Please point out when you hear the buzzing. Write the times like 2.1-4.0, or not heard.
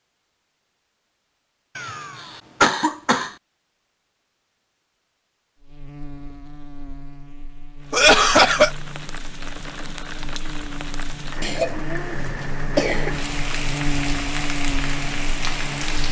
5.6-16.0.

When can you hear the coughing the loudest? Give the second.
8 s.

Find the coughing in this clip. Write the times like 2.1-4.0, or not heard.
1.8-3.3, 7.9-8.7, 11.4-13.1.